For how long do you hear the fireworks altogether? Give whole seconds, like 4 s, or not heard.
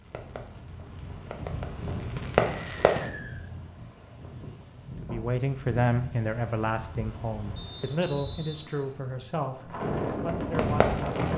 5 s.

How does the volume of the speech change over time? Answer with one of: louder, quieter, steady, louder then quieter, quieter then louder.
quieter.